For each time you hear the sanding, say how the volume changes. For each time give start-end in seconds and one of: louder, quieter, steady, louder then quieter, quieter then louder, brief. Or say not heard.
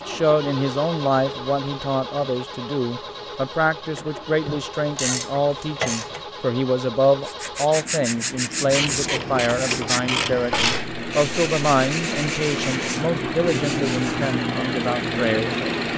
7.2-14.4 quieter.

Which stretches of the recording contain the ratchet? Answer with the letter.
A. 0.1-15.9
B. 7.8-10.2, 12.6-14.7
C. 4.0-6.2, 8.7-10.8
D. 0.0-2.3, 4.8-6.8
C.